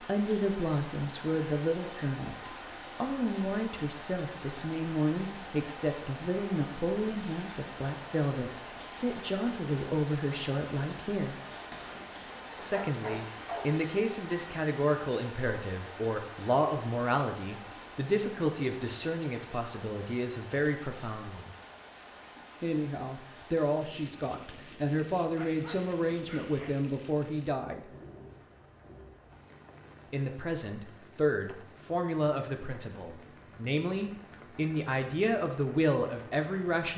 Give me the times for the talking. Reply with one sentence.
You can hear the talking from 0.0 to 11.4 s, from 12.6 to 21.5 s, from 22.6 to 27.9 s and from 30.1 to 36.9 s.